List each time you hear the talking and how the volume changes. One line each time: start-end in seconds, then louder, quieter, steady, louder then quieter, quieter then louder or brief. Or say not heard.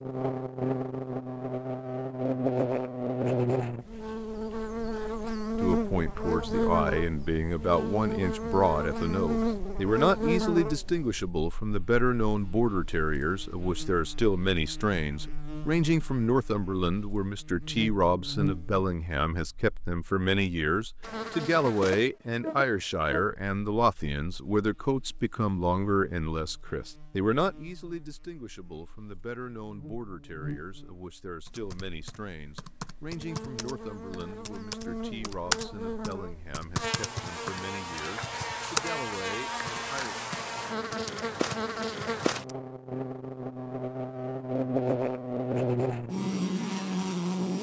5.6-40.1 quieter.